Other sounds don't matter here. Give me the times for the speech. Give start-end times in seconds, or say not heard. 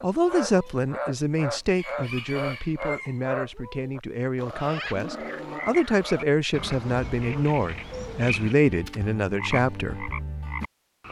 0.0-10.1.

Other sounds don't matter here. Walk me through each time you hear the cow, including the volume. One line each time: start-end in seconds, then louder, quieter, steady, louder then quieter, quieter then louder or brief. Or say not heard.
not heard.